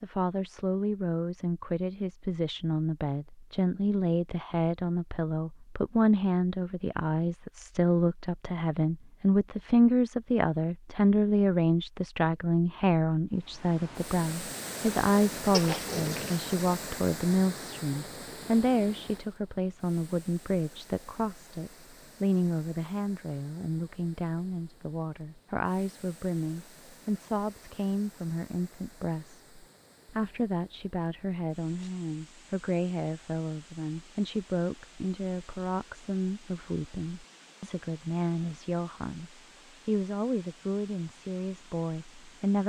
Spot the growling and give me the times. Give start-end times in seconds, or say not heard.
15.5-16.4.